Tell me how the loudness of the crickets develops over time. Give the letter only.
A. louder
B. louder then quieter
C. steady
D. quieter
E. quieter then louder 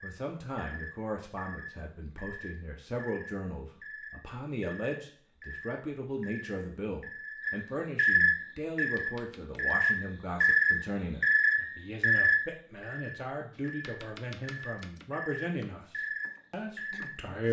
B.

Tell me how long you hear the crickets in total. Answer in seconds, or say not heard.
17 s.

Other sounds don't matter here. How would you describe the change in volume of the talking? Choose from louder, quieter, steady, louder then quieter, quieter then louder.
steady.